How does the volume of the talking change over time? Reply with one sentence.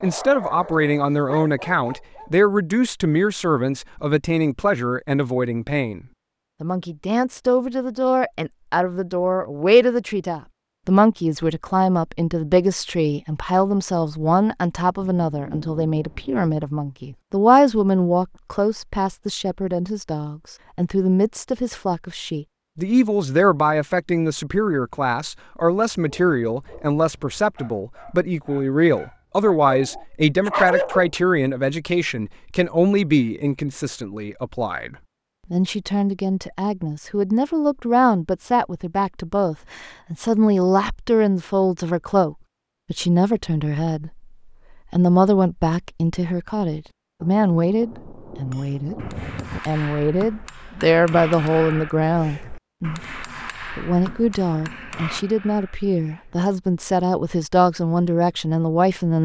The volume of the talking stays about the same.